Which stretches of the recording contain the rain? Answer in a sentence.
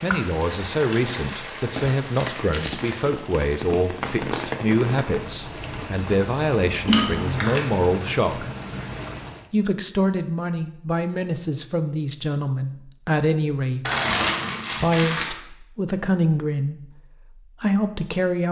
The rain can be heard from 0.0 to 9.4 s.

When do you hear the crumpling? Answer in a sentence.
You can hear the crumpling from 0.6 to 2.9 s, from 6.8 to 7.7 s and from 13.8 to 15.3 s.